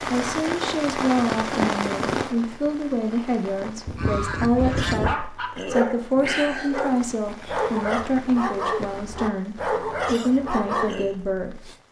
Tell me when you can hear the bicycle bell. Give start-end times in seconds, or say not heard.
not heard.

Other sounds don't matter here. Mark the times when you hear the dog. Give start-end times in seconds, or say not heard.
5.0-10.9.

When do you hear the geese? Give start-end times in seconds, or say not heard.
3.9-5.2.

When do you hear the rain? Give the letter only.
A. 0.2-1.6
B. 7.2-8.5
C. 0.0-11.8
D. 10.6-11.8
C.